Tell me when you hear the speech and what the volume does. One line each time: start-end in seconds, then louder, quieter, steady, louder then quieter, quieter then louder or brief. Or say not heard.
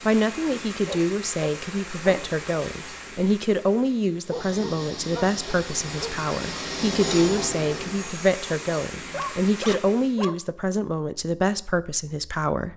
0.0-12.7 steady.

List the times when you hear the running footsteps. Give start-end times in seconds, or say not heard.
not heard.